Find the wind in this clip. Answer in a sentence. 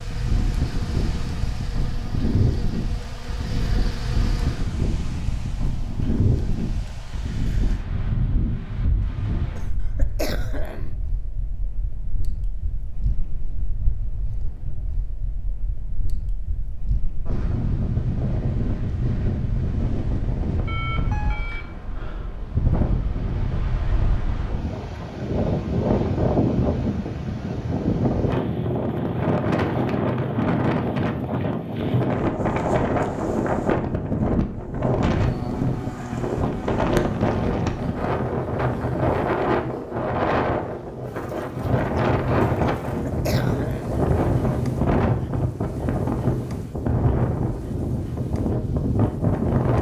The wind can be heard from 0.0 to 49.7 s.